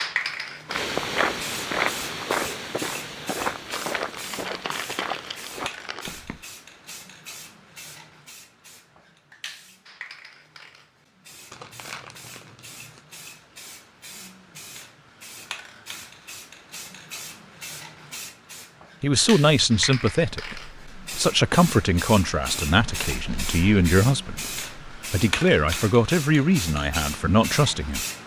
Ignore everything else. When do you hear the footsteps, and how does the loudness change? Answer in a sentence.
The footsteps can be heard from 0.7 to 6.5 s, getting quieter.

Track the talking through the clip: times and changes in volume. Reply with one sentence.
You can hear the talking from 19.0 to 28.2 s, at a steady volume.